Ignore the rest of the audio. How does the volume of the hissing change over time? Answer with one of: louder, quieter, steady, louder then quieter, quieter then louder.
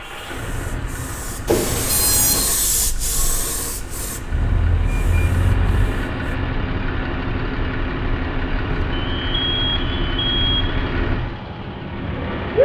louder then quieter.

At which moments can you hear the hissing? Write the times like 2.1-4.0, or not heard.
0.0-6.3.